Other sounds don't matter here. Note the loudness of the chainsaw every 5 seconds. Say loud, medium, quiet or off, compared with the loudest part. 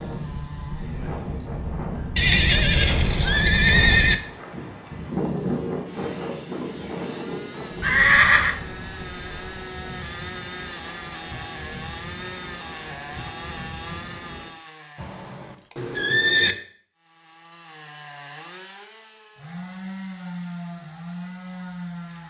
medium, medium, loud, medium, loud.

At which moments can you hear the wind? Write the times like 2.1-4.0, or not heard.
0.0-14.5.